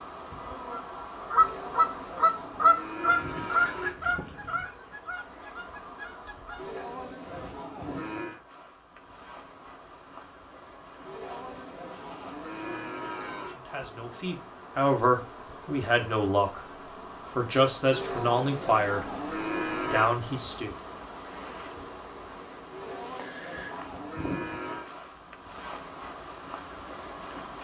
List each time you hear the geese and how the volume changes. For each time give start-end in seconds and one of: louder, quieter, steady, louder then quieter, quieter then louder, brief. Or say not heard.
0.7-6.8 quieter.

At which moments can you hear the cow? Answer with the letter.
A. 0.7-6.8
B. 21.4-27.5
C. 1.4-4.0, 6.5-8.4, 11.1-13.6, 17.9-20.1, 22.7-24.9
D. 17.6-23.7
C.